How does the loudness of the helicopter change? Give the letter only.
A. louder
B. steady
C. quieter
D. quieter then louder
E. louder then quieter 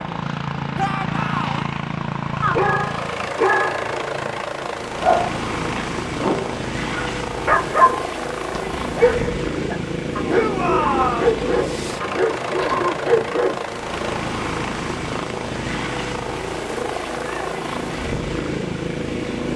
B.